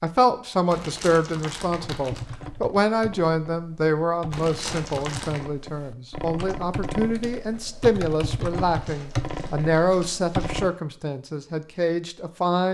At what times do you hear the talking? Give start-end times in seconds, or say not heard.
0.0-12.6.